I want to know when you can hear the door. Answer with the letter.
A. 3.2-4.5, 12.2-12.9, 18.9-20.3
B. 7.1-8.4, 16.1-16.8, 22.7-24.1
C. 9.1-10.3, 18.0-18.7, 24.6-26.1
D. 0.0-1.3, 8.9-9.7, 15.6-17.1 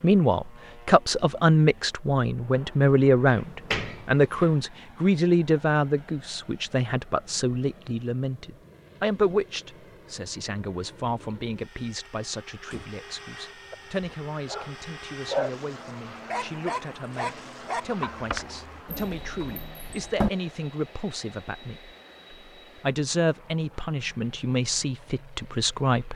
A.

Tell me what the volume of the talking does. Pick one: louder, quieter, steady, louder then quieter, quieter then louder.
quieter then louder.